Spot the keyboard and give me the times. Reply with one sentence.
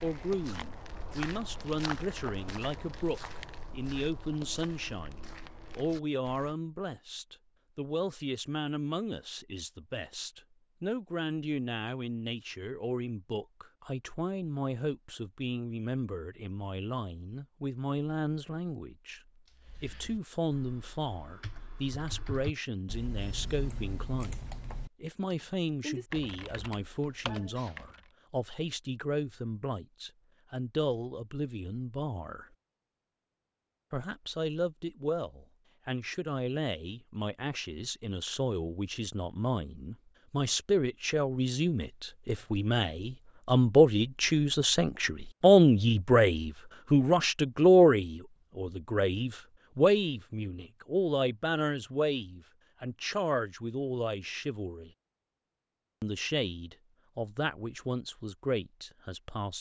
The keyboard can be heard from 19.4 to 28.1 s.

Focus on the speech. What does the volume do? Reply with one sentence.
The loudness of the speech goes up.